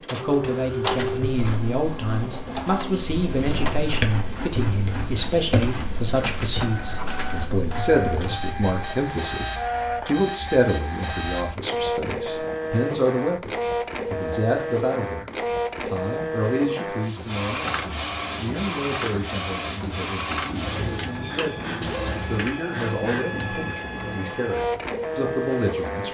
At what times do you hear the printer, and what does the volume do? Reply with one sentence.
The printer can be heard from 0.0 to 26.0 s, at a steady volume.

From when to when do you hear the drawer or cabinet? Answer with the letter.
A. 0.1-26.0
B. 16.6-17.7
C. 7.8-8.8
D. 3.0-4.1
D.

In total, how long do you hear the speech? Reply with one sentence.
You can hear the speech for 26 seconds altogether.